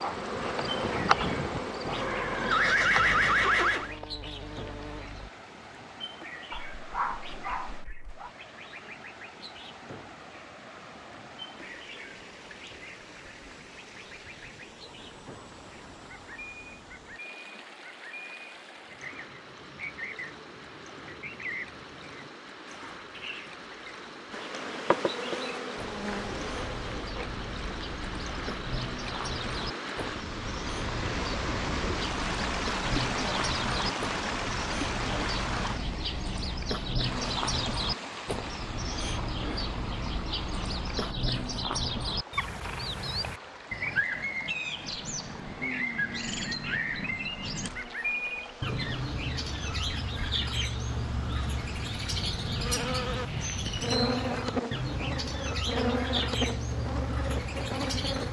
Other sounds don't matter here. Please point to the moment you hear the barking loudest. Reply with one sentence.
The loudest moment of the barking is at 7 seconds.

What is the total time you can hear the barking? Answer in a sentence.
The barking can be heard for 2 seconds in total.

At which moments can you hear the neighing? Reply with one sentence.
The neighing can be heard from 1.9 to 3.9 s.